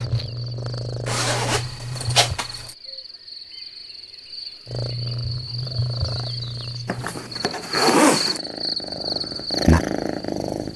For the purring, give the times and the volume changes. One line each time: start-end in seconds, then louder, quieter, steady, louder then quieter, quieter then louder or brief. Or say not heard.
0.0-2.4 brief
4.7-10.7 quieter then louder.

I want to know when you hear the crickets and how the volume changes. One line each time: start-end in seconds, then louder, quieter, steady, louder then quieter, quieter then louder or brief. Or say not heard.
0.1-10.7 louder.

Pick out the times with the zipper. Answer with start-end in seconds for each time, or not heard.
1.1-2.8, 6.8-8.4.